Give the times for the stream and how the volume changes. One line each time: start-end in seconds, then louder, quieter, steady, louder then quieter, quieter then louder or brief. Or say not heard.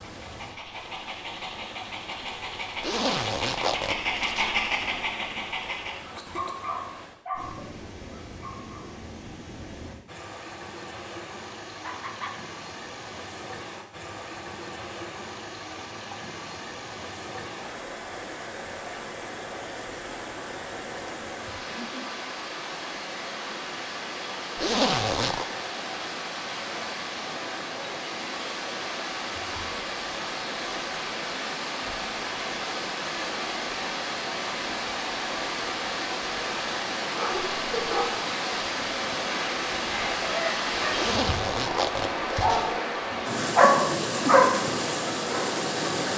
0.0-46.1 louder.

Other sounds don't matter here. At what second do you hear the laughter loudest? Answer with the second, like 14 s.
38 s.